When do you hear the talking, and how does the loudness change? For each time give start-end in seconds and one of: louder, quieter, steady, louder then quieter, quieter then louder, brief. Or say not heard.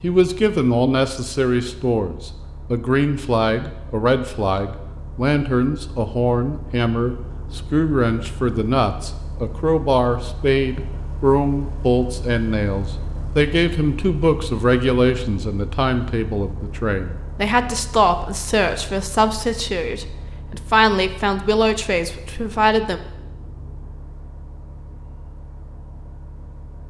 0.0-23.0 steady.